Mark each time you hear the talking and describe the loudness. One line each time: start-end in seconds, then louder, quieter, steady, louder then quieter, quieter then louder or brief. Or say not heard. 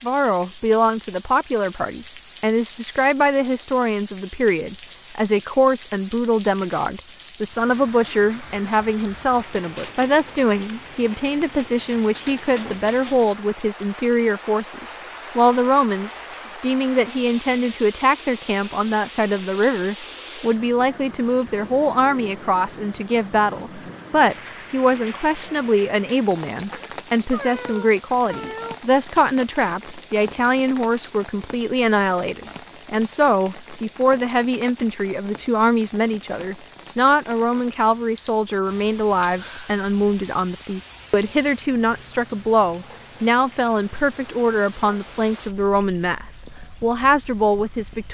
0.0-48.0 steady.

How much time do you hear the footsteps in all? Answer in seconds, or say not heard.
not heard.